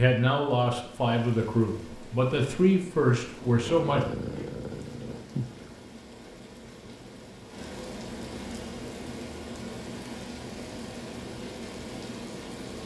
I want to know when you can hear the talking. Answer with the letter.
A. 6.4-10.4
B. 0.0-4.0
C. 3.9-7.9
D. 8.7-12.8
B.